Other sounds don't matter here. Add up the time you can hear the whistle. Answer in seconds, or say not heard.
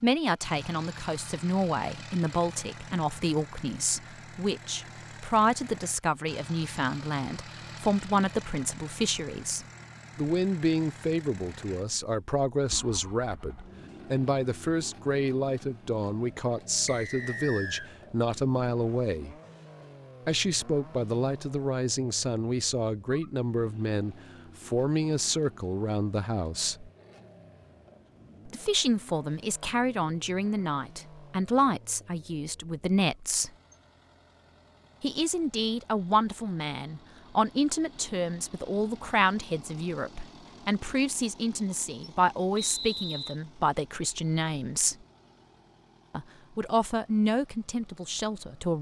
2 s.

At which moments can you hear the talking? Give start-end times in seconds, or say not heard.
0.0-19.4, 20.2-26.9, 28.4-33.5, 35.0-45.0, 46.1-48.7.